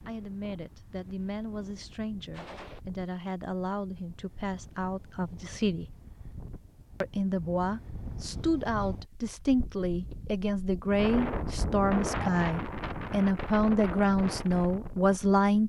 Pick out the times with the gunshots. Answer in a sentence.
The gunshots can be heard from 2.3 to 2.8 s.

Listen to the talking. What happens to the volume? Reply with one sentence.
The loudness of the talking goes up.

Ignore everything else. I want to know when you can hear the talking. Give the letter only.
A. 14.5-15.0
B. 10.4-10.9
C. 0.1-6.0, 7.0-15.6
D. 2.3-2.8
C.